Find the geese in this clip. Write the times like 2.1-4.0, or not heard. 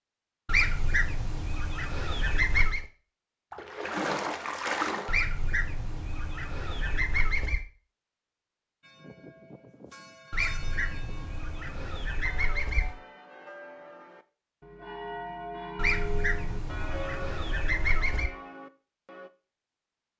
0.5-2.9, 5.0-7.7, 10.3-12.9, 15.8-18.3.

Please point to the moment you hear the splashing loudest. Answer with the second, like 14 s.
5 s.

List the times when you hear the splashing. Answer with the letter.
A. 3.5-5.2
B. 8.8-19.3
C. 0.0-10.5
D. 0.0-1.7
A.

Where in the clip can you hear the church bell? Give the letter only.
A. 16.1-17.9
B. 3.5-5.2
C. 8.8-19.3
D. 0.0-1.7
C.